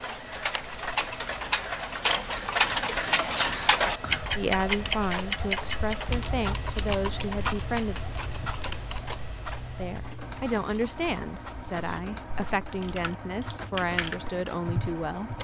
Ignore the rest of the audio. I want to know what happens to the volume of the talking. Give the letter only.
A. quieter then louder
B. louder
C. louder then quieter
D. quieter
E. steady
E.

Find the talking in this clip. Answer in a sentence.
You can hear the talking from 4.3 to 8.0 s and from 9.8 to 15.3 s.